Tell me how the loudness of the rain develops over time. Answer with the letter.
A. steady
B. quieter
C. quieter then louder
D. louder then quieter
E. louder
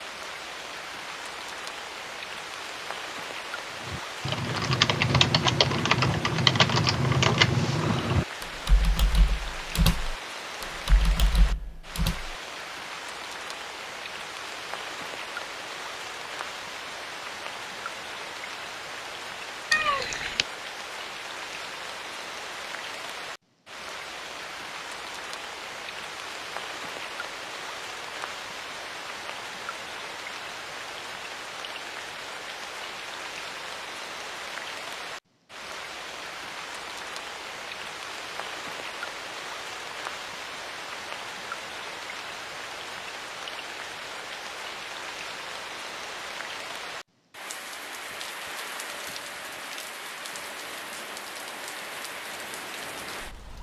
A.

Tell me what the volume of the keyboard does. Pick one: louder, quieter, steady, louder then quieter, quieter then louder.
quieter.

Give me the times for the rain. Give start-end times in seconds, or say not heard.
0.0-53.5.